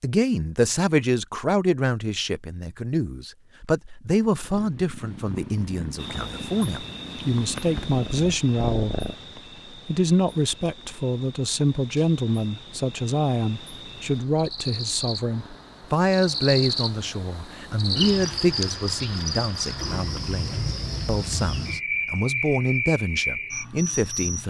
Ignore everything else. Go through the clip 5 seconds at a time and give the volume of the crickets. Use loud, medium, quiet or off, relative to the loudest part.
off, medium, medium, loud, loud.